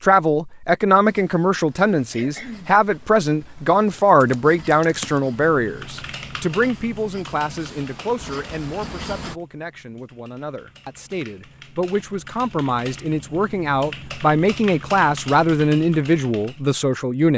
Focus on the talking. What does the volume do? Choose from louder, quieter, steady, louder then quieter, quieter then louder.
quieter then louder.